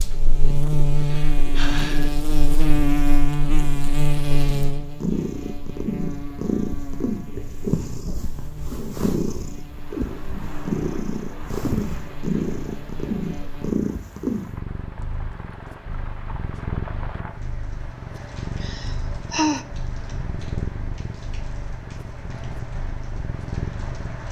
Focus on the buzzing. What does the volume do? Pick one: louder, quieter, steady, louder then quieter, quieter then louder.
quieter.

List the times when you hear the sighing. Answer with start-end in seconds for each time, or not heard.
0.9-2.1, 18.6-19.6.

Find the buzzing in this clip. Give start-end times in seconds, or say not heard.
0.0-13.8.